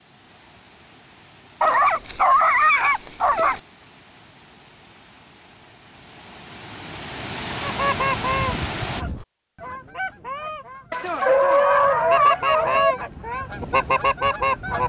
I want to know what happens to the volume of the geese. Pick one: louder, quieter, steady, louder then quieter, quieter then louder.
quieter then louder.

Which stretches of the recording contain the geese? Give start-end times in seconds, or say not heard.
7.6-14.8.